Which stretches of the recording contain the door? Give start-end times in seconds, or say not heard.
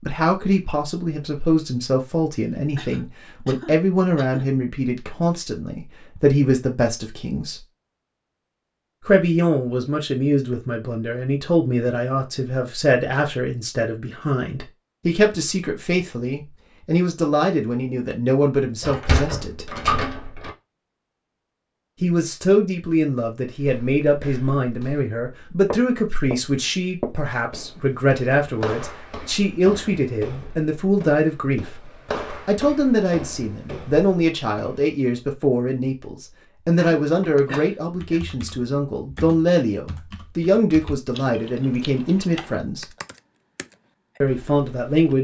18.8-20.5.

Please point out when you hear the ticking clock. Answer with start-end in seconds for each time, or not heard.
not heard.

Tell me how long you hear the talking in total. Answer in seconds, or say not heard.
39 s.